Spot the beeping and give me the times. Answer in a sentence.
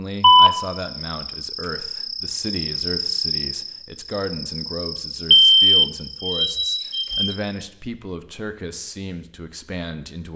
You can hear the beeping from 0.2 to 0.7 s and from 5.3 to 7.3 s.